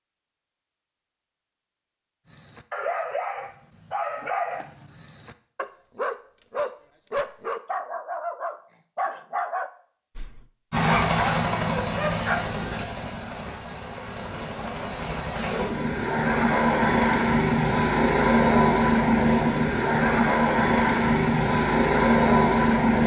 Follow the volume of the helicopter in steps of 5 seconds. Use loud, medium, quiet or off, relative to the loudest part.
off, off, medium, loud, loud.